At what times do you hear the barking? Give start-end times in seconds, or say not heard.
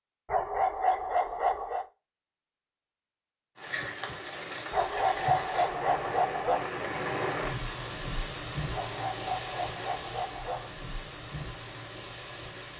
0.2-1.9, 4.7-6.7, 8.7-10.7.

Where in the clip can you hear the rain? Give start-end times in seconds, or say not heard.
3.5-12.7.